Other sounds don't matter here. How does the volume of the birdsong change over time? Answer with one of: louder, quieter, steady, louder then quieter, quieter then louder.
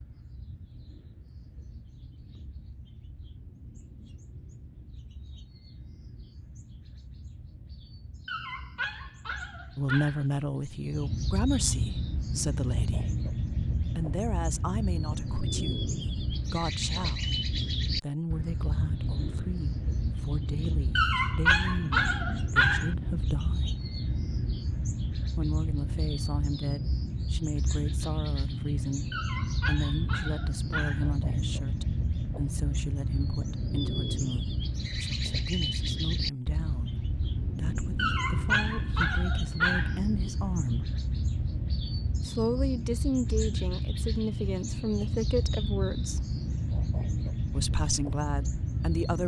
louder.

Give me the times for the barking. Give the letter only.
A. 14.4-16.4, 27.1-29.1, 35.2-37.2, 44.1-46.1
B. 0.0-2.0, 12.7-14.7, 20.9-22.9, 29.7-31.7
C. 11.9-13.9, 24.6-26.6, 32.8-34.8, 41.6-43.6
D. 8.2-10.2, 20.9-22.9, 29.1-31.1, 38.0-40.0
D.